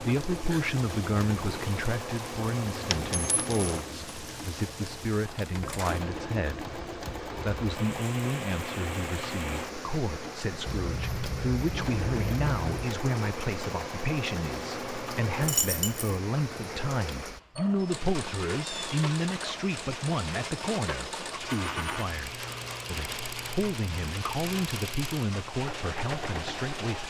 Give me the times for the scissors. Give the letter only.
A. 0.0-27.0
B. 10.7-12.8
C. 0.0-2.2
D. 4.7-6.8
B.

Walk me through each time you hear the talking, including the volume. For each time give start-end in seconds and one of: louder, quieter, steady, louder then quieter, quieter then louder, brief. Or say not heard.
0.0-27.0 steady.